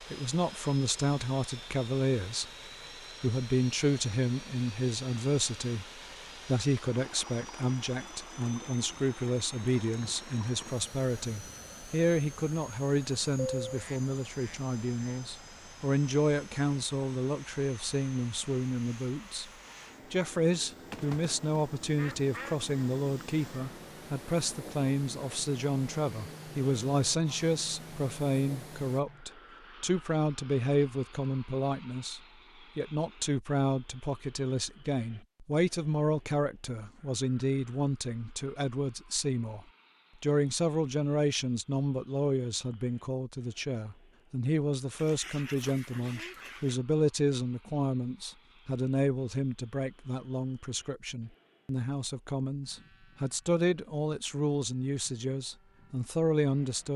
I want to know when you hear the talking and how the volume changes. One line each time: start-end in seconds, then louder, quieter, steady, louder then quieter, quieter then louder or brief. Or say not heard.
0.1-2.5 brief
3.2-19.5 steady
20.1-56.9 steady.